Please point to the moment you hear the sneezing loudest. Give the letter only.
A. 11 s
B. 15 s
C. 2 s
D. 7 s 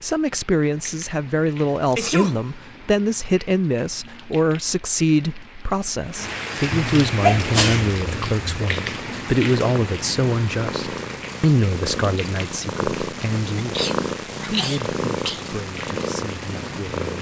D.